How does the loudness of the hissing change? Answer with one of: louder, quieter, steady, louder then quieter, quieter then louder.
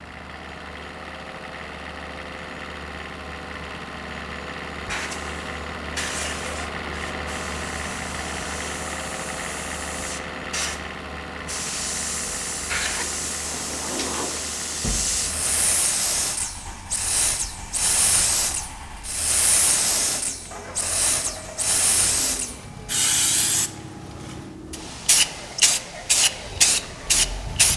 louder.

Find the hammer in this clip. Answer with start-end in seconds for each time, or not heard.
not heard.